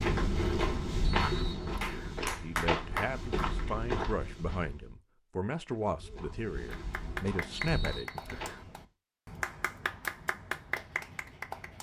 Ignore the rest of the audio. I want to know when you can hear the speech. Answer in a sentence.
The speech can be heard from 2.4 to 8.4 s.